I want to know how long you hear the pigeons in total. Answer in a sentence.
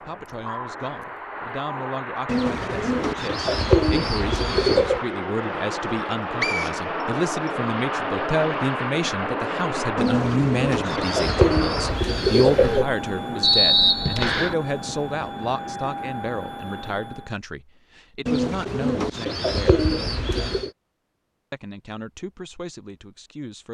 The pigeons can be heard for 8 seconds in total.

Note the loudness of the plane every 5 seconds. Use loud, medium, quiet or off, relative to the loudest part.
medium, loud, loud, medium, off.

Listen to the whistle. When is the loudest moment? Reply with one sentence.
The volume of the whistle peaks at 14 seconds.